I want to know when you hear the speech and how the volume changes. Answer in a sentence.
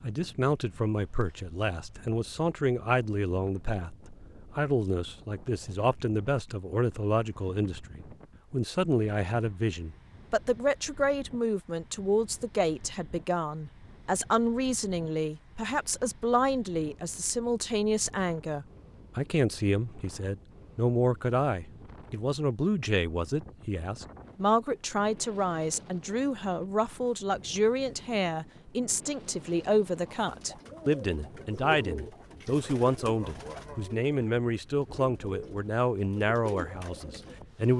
You can hear the speech from 0.0 to 37.7 s, at a steady volume.